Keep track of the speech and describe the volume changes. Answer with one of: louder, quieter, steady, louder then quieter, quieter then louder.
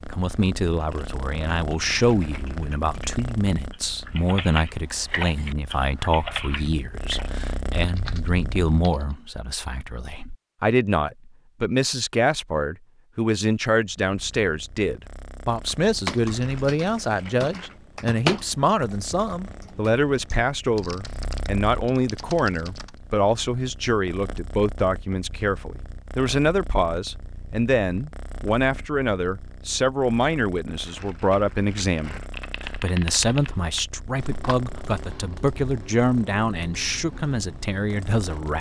steady.